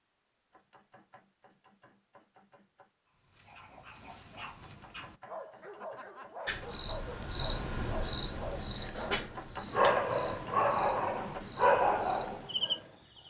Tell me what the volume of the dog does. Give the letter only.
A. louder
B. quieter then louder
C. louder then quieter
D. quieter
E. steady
A.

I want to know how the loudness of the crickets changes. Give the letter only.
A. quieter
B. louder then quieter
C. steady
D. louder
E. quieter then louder
A.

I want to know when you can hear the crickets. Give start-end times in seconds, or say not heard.
6.5-13.2.